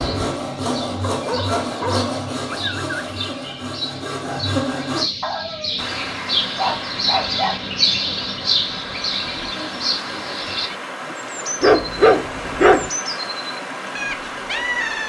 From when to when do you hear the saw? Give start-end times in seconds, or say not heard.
0.0-5.1.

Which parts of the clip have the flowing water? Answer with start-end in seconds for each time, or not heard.
5.8-15.0.